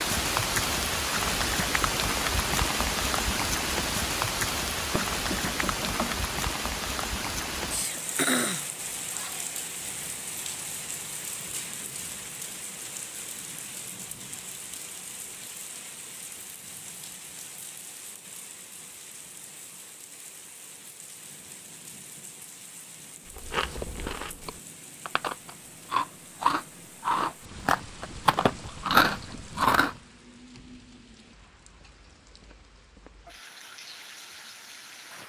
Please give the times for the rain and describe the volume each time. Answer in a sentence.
The rain can be heard from 0.0 to 35.2 s, getting quieter.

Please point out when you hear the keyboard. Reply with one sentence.
The keyboard can't be heard in this clip.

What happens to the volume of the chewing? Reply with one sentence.
The volume of the chewing goes up.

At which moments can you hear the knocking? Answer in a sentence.
The knocking can be heard from 4.9 to 6.3 s.